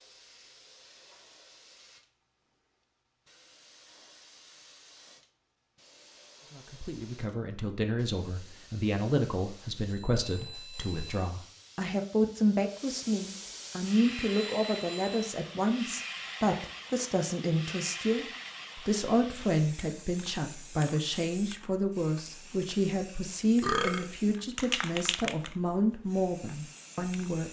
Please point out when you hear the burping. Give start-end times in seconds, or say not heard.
23.6-24.1.